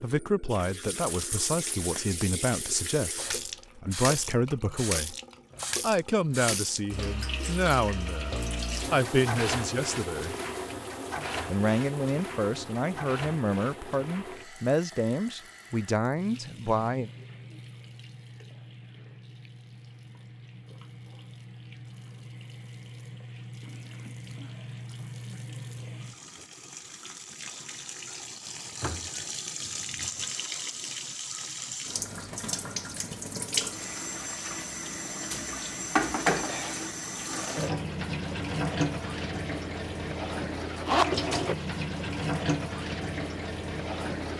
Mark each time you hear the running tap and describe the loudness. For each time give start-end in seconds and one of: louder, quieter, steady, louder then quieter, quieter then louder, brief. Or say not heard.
0.0-44.3 quieter then louder.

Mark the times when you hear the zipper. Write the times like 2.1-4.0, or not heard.
40.9-41.8.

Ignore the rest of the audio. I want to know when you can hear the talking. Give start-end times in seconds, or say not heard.
0.0-5.2, 5.8-10.3, 11.5-17.1.